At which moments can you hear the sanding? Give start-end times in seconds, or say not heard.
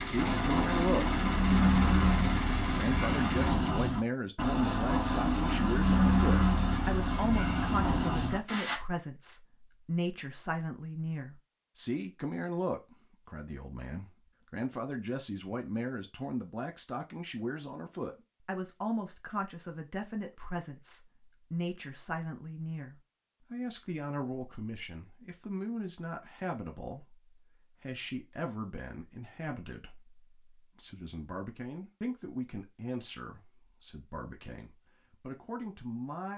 0.1-8.8.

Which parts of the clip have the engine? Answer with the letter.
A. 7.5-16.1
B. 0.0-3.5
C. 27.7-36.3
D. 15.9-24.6
B.